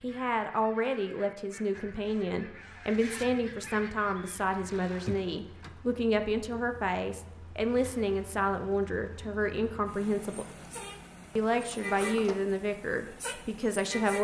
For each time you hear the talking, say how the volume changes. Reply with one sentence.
The talking can be heard from 0.0 to 10.4 s, at a steady volume; and briefly from 11.3 to 14.1 s.